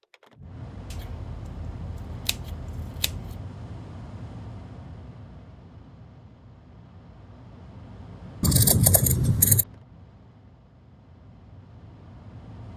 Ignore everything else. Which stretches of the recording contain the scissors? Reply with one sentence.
The scissors can be heard from 0.9 to 3.4 s and from 8.4 to 9.7 s.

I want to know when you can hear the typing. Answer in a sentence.
You can't hear the typing here.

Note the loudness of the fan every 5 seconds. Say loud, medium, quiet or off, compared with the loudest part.
loud, medium, medium.